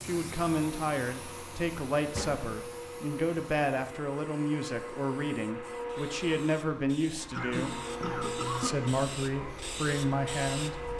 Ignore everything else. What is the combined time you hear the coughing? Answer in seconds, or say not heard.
2 s.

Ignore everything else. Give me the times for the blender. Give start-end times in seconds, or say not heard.
0.0-10.9.